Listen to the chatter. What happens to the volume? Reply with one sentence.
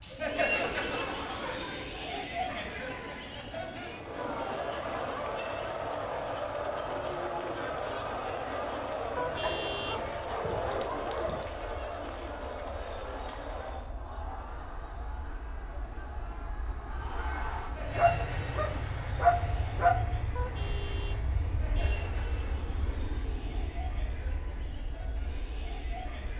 The loudness of the chatter goes down.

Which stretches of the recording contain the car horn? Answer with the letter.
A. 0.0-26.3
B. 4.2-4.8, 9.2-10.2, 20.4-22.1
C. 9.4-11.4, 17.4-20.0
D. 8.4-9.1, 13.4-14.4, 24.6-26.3
B.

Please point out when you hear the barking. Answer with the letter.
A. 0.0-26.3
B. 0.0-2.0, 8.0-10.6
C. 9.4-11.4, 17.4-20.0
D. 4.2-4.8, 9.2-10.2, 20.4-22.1
C.